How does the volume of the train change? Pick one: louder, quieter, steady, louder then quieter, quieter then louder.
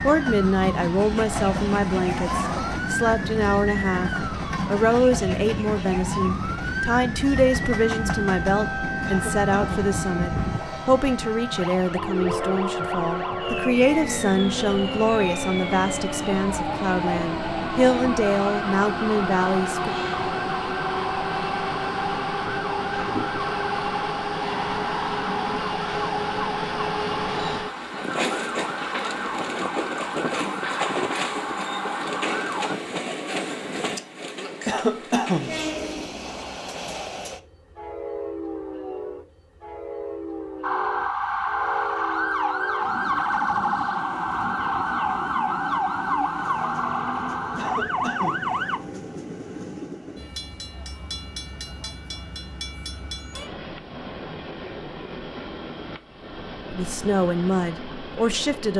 quieter.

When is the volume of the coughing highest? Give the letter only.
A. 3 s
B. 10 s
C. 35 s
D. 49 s
C.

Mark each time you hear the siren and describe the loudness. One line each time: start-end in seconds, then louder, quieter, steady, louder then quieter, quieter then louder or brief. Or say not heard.
0.0-32.8 steady
40.6-48.8 steady.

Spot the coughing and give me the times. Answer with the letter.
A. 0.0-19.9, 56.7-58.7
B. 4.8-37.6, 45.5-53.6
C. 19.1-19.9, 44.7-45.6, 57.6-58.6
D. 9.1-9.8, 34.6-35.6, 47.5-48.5
D.